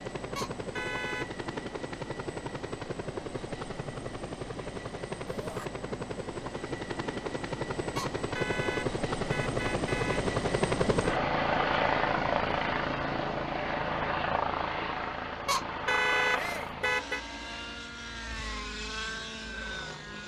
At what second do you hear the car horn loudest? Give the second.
16 s.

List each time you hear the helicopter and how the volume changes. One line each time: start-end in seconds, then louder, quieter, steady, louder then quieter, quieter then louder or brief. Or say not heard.
0.0-20.2 louder then quieter.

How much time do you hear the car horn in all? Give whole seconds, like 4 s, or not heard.
5 s.